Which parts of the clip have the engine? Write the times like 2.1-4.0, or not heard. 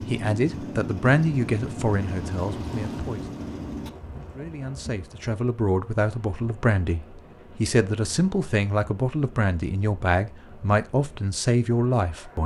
0.0-3.9.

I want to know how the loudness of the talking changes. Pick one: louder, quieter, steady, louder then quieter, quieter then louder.
quieter then louder.